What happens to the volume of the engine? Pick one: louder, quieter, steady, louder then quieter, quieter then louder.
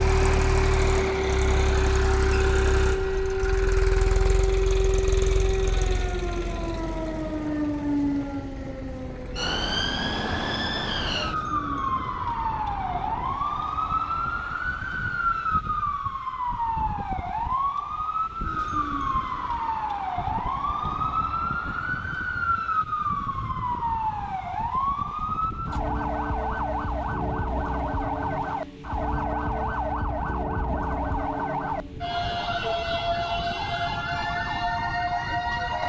quieter.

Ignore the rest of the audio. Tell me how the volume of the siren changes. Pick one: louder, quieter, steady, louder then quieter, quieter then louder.
steady.